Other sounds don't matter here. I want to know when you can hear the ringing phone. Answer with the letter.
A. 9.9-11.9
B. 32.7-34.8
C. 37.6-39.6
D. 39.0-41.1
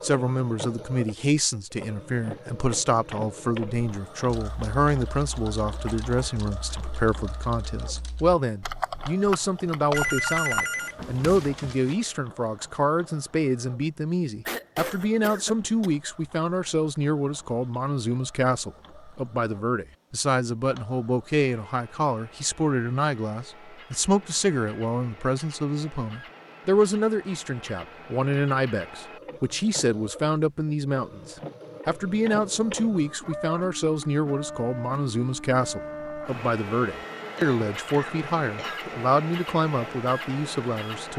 A.